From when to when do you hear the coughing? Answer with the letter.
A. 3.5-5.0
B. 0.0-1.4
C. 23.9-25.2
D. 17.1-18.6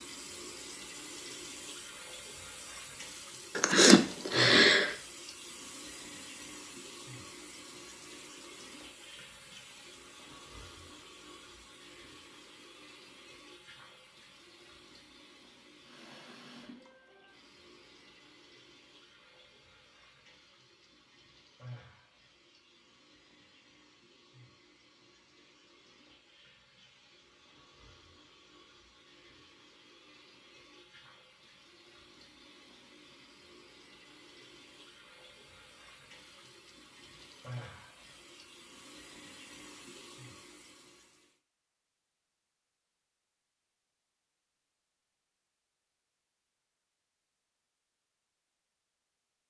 A.